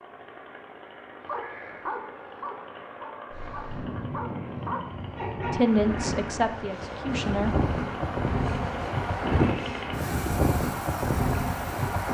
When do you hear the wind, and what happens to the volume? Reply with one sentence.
The wind can be heard from 3.3 to 12.0 s, getting louder.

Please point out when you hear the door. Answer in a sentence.
You can't hear the door here.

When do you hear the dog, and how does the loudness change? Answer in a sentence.
You can hear the dog from 1.2 to 6.2 s, getting quieter then louder.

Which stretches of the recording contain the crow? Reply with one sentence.
The crow can't be heard in this clip.